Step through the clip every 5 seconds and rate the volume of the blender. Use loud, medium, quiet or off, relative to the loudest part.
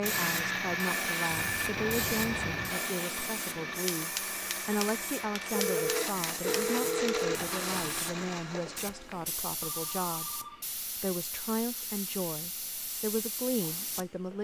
loud, loud, off.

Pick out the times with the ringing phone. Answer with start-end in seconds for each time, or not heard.
1.3-2.8, 5.5-7.4, 9.6-10.7.